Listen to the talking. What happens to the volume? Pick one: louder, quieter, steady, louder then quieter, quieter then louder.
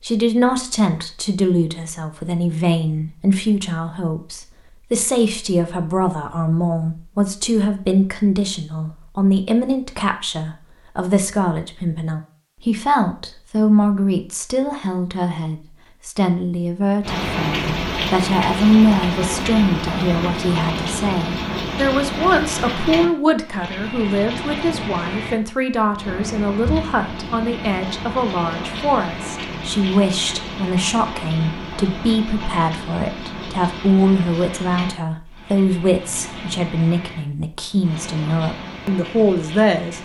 steady.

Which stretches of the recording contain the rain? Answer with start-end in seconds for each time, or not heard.
17.0-40.0.